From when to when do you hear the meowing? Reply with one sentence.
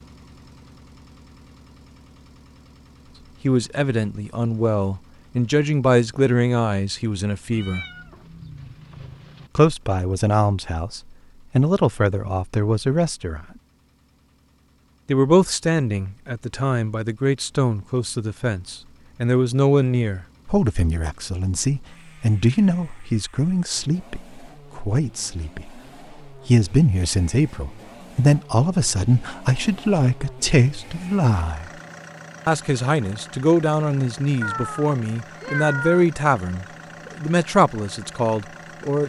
The meowing can be heard from 7.5 to 9.5 s and from 34.4 to 36.0 s.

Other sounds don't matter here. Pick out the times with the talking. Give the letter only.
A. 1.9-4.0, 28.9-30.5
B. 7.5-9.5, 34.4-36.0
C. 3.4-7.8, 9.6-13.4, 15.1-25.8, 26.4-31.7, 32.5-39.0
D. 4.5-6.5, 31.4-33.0
C.